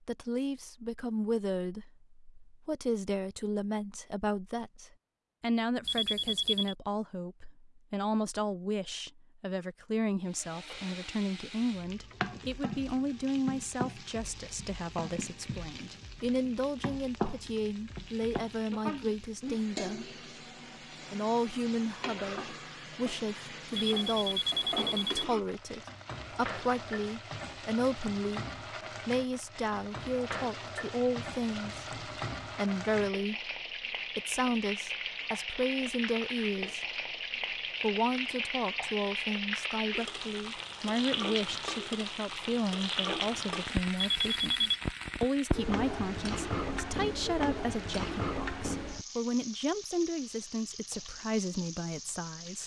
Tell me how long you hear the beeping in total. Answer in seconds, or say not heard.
3 s.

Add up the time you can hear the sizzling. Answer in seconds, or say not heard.
42 s.